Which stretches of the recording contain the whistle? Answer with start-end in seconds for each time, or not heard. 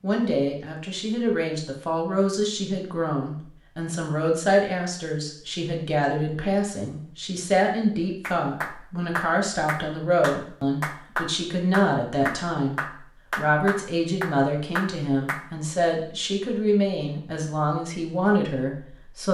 not heard.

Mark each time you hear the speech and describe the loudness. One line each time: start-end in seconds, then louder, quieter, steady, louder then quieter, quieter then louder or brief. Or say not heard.
0.0-19.3 steady.